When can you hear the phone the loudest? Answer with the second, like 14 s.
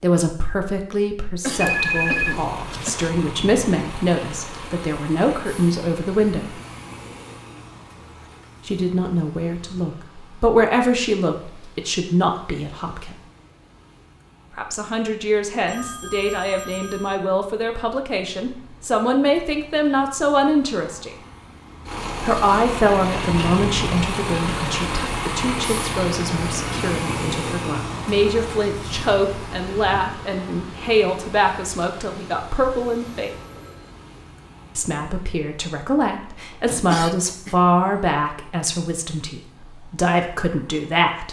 2 s.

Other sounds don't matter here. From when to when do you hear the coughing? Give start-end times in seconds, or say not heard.
1.4-3.1, 23.1-23.6, 36.9-37.5.